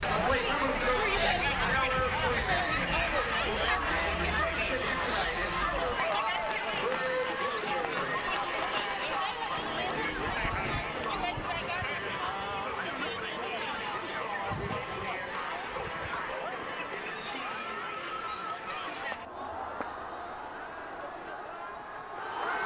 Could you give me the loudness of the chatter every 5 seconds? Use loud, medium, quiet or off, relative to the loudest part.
loud, loud, medium, medium, medium.